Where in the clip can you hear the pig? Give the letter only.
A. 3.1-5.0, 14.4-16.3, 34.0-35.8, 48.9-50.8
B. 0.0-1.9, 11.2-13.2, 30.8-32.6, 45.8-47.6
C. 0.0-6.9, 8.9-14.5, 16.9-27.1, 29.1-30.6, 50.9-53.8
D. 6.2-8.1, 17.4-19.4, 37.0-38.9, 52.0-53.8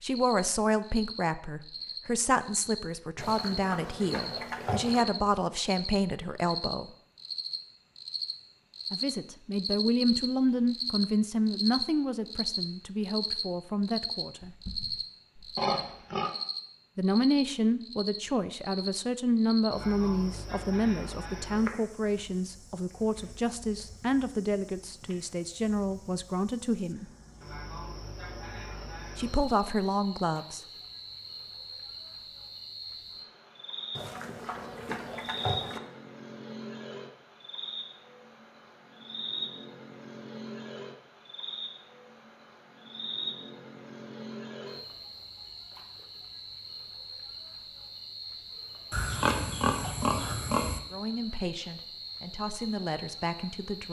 A.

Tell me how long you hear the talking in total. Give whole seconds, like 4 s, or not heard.
27 s.